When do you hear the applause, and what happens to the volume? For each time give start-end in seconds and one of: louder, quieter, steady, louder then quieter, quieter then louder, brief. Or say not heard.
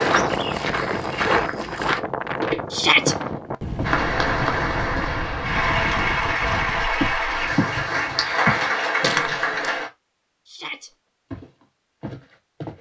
3.8-9.9 steady.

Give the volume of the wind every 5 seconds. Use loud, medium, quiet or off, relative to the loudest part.
loud, medium, off.